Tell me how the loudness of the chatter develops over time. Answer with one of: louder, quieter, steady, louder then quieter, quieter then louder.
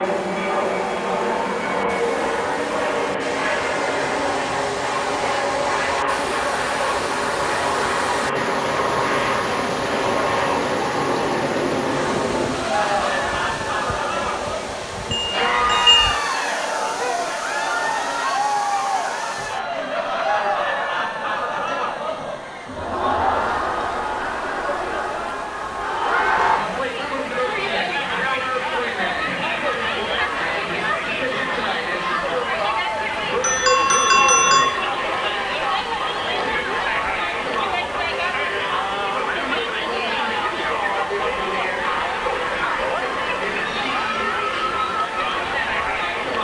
steady.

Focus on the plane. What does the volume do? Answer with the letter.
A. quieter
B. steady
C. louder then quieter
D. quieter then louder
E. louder
A.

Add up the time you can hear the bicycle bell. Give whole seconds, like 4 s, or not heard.
3 s.